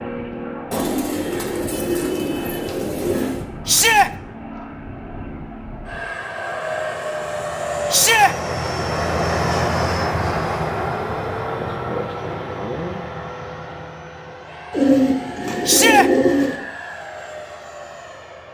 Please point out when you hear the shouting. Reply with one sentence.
The shouting can be heard from 3.6 to 4.1 s, from 7.9 to 8.3 s and from 15.7 to 16.1 s.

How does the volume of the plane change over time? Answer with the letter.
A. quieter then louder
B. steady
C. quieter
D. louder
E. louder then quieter
E.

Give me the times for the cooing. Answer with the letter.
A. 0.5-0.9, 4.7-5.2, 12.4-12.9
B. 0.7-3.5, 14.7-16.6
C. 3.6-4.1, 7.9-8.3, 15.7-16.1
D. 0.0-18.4
B.